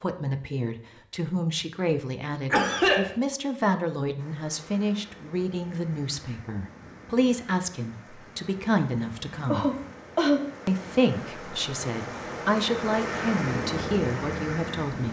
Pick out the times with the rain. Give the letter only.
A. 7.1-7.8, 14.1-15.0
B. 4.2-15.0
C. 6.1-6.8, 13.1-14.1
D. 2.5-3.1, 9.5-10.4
B.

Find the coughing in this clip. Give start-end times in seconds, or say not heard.
2.5-3.1, 9.5-10.4.